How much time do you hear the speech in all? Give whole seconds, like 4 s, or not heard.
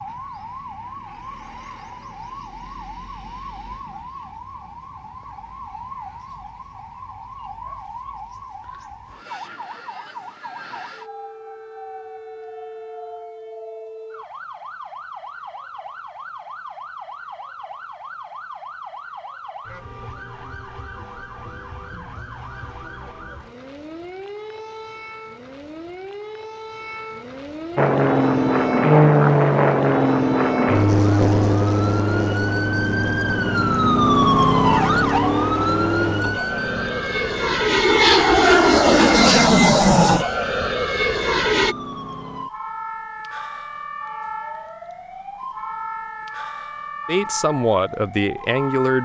2 s.